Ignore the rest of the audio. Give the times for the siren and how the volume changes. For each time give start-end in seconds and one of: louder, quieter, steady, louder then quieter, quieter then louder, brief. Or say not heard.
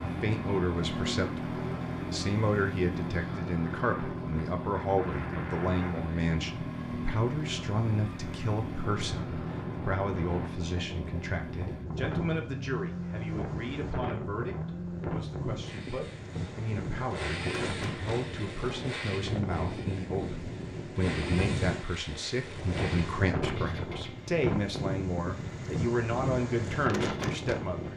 not heard.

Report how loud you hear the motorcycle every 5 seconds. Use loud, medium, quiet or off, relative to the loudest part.
loud, loud, loud, medium, medium, medium.